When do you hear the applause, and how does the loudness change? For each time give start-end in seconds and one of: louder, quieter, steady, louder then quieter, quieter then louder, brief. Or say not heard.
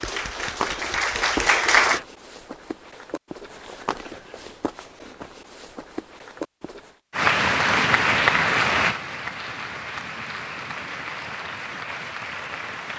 0.0-2.0 brief
7.1-12.9 quieter.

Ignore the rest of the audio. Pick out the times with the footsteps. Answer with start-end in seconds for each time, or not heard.
0.0-7.0.